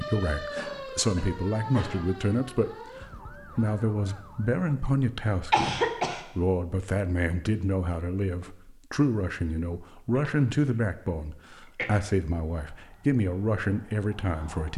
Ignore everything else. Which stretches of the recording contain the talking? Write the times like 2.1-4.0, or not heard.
0.0-14.7.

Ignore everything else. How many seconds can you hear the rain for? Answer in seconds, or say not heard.
not heard.